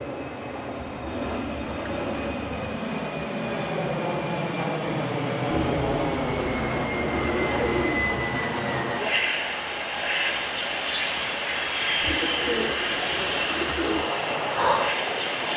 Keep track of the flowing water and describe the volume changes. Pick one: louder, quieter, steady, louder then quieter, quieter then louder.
louder.